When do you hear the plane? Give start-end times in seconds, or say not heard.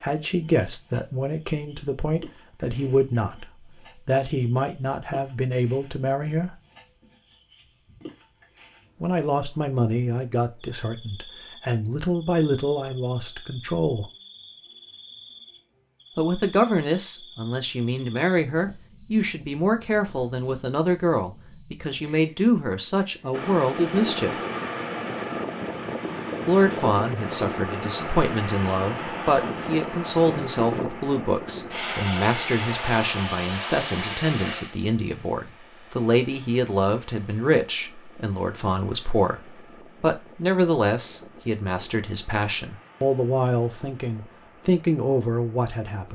23.3-46.1.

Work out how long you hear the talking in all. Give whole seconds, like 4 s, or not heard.
39 s.